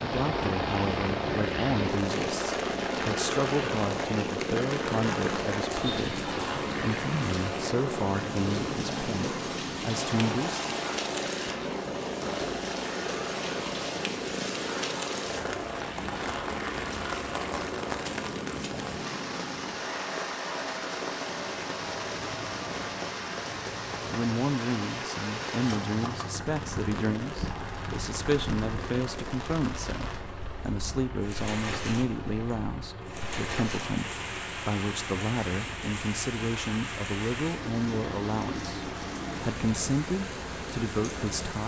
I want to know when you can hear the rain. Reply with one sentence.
You can hear the rain from 0.1 to 41.6 s.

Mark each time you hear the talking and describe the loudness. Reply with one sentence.
You can hear the talking from 0.0 to 10.7 s, at a steady volume; and from 24.1 to 41.6 s, at a steady volume.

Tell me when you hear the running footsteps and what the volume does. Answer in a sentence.
The running footsteps can't be heard in this clip.